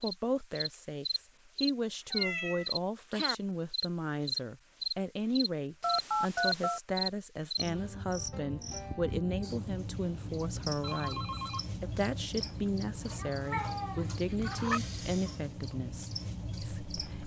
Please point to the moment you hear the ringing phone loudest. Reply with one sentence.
The loudest moment of the ringing phone is at 6 seconds.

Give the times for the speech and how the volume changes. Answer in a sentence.
The speech can be heard from 0.0 to 17.2 s, at a steady volume.